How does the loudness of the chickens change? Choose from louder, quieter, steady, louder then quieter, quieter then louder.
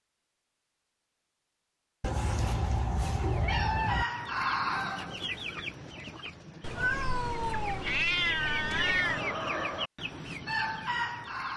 quieter then louder.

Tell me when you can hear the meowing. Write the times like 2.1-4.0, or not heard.
2.0-4.0, 6.6-9.2.